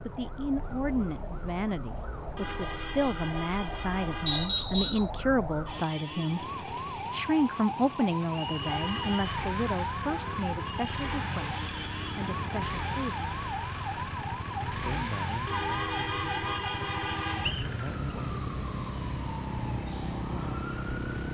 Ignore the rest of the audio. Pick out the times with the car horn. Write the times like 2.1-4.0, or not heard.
2.4-4.5, 8.6-9.3, 15.4-17.6.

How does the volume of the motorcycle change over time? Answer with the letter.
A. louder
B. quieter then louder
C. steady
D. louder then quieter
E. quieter
C.